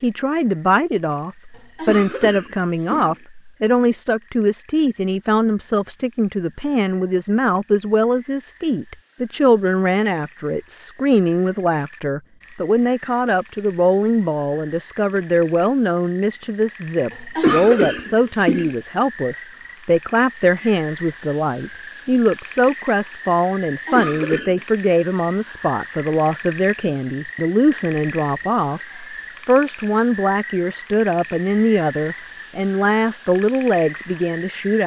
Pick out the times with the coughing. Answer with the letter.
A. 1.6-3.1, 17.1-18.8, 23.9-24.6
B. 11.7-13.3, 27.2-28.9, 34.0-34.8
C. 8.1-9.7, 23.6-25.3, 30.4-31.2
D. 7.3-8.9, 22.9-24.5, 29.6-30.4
A.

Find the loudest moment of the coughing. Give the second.
18 s.